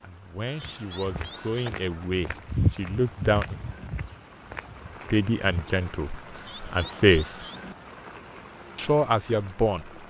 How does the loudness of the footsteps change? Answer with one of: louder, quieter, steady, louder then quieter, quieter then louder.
louder then quieter.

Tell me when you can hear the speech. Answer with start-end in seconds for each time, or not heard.
0.0-3.6, 5.1-7.5, 8.8-10.0.